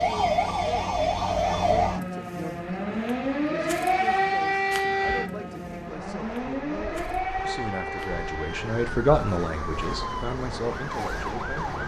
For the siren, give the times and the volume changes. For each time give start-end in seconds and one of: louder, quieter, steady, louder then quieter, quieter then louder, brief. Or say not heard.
0.0-11.8 quieter.